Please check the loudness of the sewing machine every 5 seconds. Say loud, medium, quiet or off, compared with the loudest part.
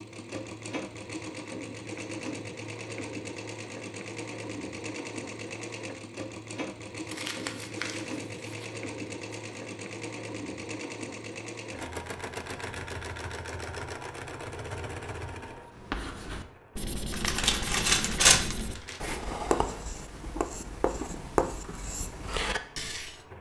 loud, loud, loud, medium, quiet.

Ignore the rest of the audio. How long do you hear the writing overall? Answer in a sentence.
You can hear the writing for 8 seconds altogether.